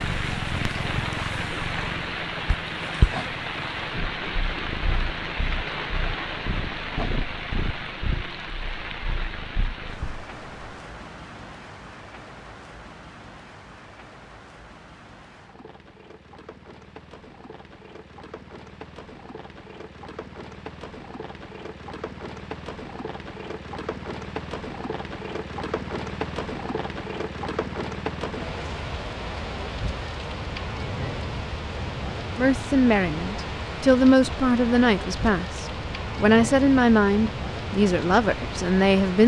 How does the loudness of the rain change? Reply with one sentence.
The volume of the rain goes down, then up.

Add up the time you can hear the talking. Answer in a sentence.
You can hear the talking for 7 seconds altogether.